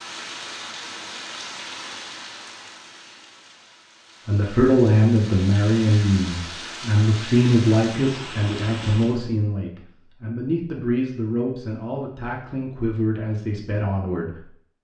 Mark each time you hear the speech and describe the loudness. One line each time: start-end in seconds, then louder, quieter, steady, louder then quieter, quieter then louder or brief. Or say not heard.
4.2-14.4 quieter.